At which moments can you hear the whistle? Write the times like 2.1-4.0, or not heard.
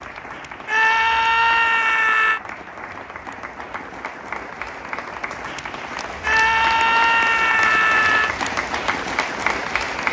not heard.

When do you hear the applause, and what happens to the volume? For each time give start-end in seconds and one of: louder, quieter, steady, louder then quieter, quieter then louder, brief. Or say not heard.
0.0-10.0 louder.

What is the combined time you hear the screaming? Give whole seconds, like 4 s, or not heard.
4 s.